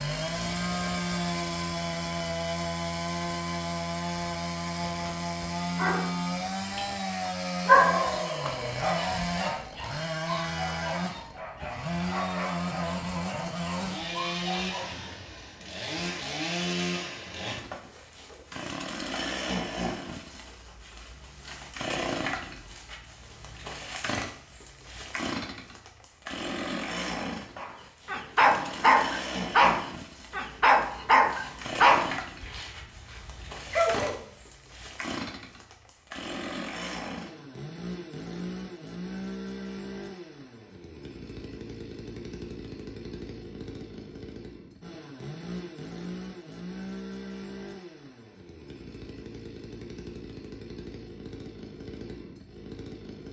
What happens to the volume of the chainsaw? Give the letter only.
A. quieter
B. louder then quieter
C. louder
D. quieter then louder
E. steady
A.